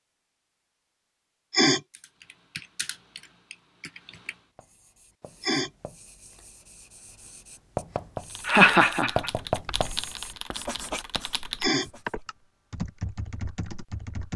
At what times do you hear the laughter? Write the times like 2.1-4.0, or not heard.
8.4-9.7.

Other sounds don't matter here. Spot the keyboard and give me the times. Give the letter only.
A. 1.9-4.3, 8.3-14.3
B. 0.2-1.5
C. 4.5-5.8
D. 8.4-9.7
A.